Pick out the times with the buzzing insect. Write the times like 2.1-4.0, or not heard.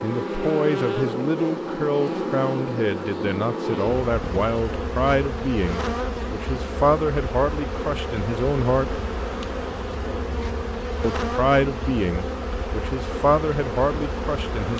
0.0-14.7.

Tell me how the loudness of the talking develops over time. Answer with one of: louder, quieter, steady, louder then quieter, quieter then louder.
steady.